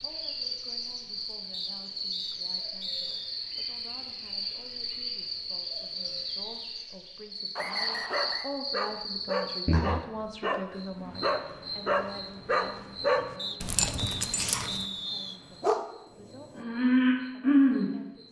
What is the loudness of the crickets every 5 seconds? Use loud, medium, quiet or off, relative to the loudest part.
medium, medium, quiet, loud.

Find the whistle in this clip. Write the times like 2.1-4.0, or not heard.
1.5-3.4, 7.5-8.5, 13.3-15.4.